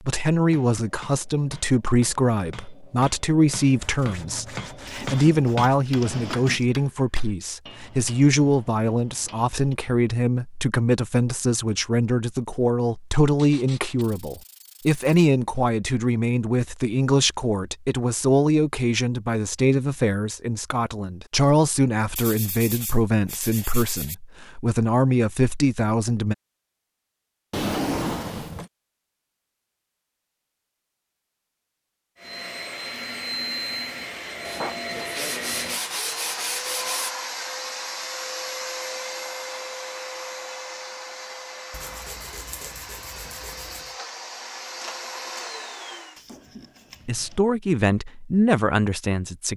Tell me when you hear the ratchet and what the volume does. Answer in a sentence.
You can't hear the ratchet here.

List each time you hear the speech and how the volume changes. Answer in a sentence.
You can hear the speech from 0.1 to 26.4 s, at a steady volume; and briefly from 47.0 to 49.5 s.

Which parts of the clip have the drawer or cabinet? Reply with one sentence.
The drawer or cabinet can be heard from 4.8 to 6.7 s, from 27.5 to 28.7 s and from 46.1 to 47.4 s.